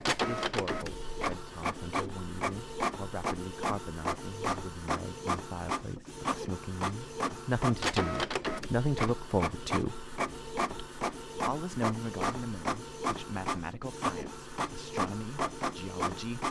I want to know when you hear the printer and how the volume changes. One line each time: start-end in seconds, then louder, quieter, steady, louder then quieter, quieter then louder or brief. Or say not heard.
0.0-16.4 steady.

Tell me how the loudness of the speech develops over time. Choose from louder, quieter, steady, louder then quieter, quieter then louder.
louder then quieter.